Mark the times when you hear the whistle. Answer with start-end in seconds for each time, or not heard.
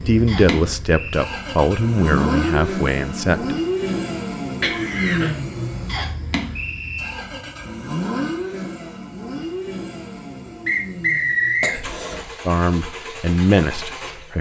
0.2-1.3, 5.8-7.2, 10.7-11.8.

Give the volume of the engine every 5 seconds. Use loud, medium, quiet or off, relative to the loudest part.
loud, loud, medium.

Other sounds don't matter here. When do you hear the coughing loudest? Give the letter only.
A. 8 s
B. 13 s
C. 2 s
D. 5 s
D.